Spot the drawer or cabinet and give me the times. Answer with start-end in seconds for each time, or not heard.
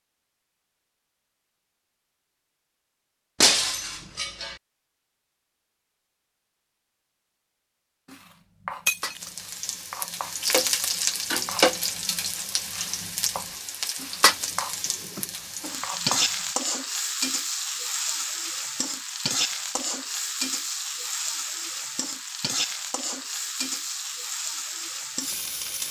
14.8-15.3.